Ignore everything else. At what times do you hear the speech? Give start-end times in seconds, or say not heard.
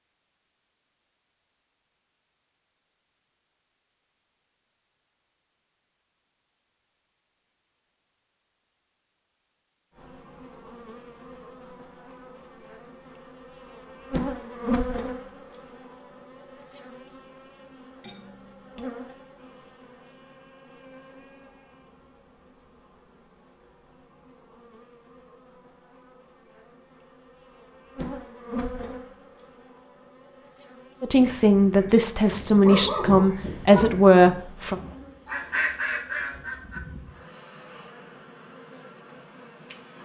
31.0-34.8.